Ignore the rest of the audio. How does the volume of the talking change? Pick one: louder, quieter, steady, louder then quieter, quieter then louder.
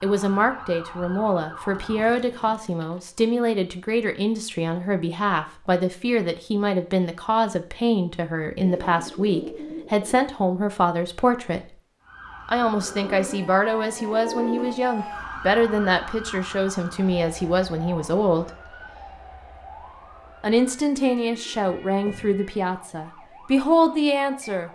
steady.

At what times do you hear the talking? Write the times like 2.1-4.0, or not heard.
0.0-11.8, 12.4-18.5, 20.4-24.7.